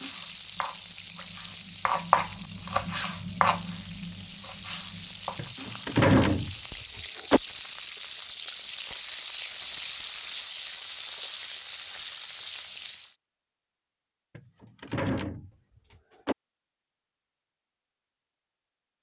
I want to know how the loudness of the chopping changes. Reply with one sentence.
The volume of the chopping goes up, then down.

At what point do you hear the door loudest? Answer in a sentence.
The volume of the door peaks at 6 seconds.